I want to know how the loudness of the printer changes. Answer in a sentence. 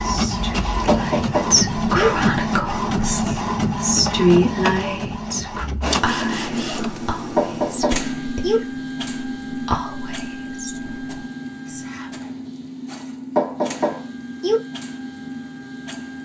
The volume of the printer goes down.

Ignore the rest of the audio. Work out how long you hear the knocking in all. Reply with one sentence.
You can hear the knocking for 4 seconds altogether.